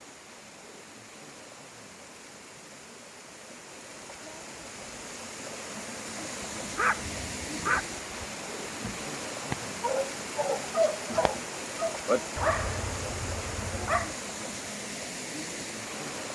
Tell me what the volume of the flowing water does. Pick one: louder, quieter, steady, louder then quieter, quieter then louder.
louder.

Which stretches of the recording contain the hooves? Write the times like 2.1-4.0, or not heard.
not heard.